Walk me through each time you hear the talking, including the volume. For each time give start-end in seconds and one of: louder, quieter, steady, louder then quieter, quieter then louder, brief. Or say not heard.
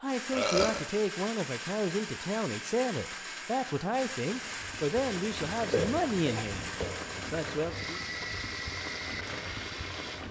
0.0-8.0 steady.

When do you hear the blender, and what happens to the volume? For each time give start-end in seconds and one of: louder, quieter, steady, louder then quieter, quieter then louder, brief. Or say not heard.
0.0-10.2 steady.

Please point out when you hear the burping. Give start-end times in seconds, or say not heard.
0.3-0.8, 5.7-6.9.